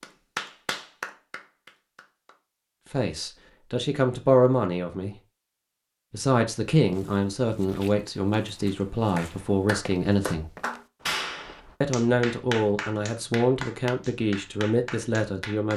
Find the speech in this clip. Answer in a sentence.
The speech can be heard from 2.9 to 5.2 s, from 6.1 to 10.5 s and from 11.8 to 15.7 s.